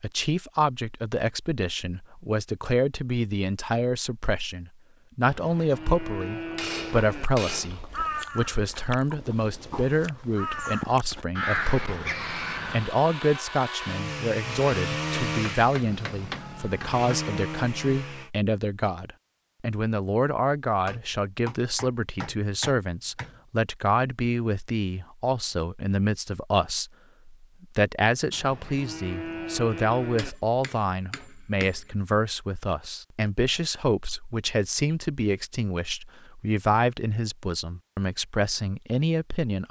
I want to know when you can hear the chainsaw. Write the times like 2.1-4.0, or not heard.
12.2-18.3.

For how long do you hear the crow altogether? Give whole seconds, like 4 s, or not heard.
6 s.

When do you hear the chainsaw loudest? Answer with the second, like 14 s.
15 s.